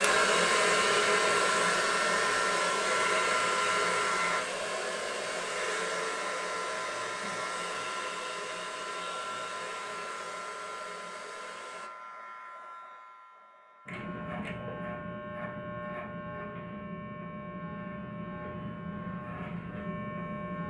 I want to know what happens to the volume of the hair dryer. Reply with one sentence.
The volume of the hair dryer goes down.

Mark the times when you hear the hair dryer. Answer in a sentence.
You can hear the hair dryer from 0.0 to 11.9 s.